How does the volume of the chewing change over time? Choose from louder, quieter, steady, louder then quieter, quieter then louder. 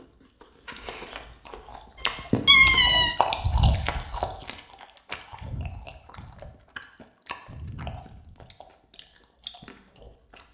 louder then quieter.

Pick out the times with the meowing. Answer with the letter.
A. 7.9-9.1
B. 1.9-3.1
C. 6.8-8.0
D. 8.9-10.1
B.